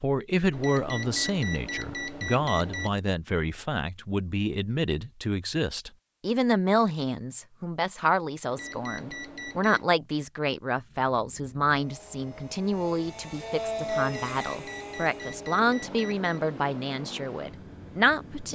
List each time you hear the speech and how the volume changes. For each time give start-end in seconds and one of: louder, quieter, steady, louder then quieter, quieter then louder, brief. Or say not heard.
0.0-18.5 steady.